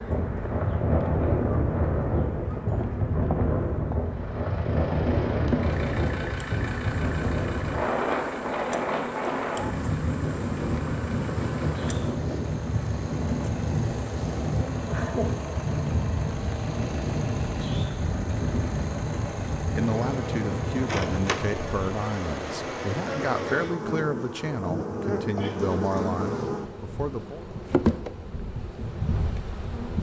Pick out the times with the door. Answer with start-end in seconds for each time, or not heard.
not heard.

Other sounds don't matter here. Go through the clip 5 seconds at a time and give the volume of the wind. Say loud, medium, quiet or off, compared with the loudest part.
loud, loud, loud, loud, medium, off.